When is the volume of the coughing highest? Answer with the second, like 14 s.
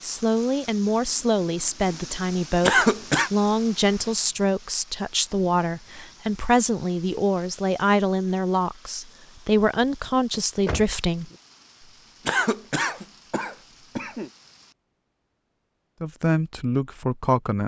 3 s.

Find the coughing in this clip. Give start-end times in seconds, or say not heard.
2.6-3.3, 12.2-14.3.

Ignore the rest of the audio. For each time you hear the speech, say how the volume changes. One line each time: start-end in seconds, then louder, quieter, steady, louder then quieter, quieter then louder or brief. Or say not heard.
0.0-11.3 steady
16.0-17.6 brief.